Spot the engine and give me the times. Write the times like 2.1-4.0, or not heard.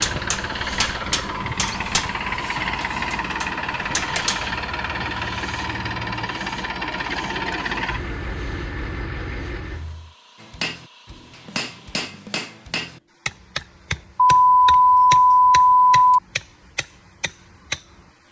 0.0-10.2.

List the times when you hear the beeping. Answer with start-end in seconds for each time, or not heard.
14.2-16.2.